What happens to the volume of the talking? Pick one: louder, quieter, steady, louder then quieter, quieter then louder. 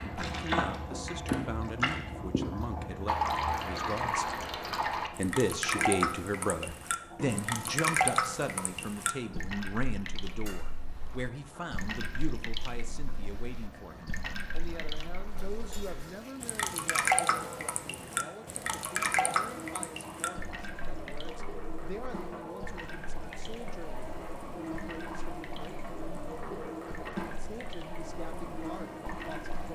quieter.